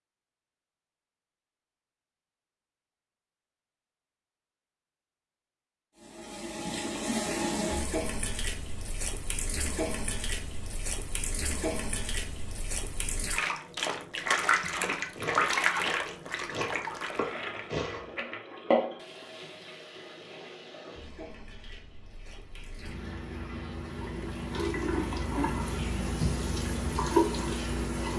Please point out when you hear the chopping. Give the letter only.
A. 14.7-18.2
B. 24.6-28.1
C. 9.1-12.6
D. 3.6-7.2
A.